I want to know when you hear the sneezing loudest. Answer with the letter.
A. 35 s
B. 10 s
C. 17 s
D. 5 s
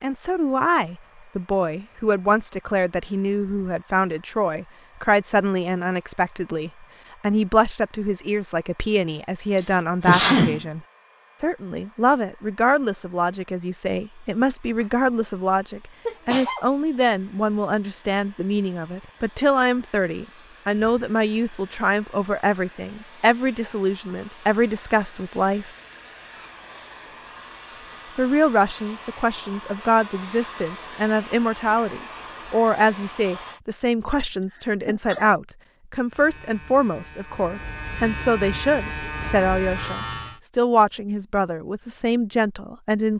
B.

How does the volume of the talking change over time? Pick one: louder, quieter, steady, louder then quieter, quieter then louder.
steady.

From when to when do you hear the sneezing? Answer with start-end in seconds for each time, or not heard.
9.1-10.7, 16.1-16.6, 34.0-35.3.